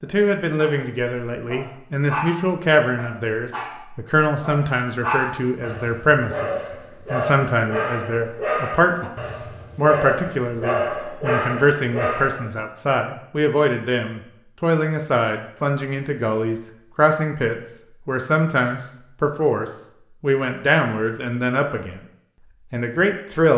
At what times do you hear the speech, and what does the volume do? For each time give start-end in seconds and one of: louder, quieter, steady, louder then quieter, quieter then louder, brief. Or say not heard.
0.0-22.0 steady
22.7-23.5 brief.